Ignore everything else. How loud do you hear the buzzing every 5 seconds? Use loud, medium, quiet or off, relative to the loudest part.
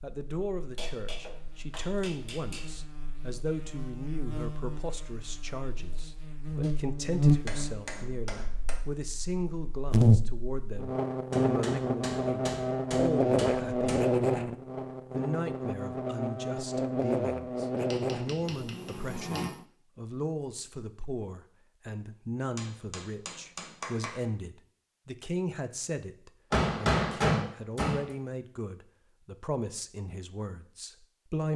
quiet, loud, loud, medium, off, off, off.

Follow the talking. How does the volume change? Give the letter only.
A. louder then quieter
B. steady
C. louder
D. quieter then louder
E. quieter
B.